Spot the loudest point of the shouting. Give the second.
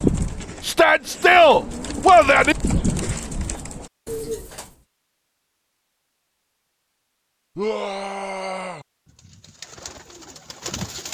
1 s.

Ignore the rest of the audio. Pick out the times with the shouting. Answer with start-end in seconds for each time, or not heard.
0.6-2.5, 7.5-8.8.